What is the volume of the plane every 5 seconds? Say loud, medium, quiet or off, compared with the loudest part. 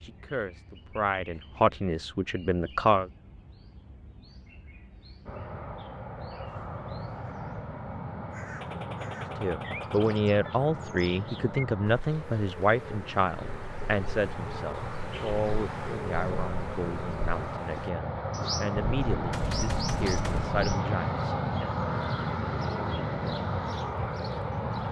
off, medium, medium, loud, loud.